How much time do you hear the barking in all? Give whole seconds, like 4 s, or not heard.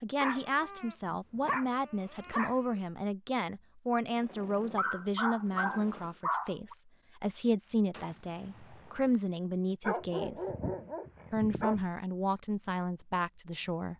7 s.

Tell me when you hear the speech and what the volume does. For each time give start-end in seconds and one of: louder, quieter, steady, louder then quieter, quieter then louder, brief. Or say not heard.
0.0-10.4 steady
11.3-13.9 brief.